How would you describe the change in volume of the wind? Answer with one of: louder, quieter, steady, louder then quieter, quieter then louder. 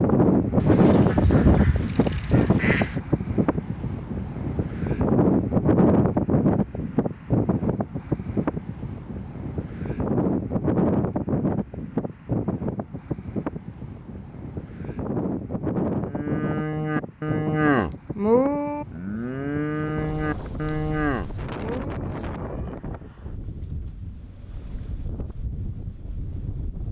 quieter.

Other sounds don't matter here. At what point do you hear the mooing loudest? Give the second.
18 s.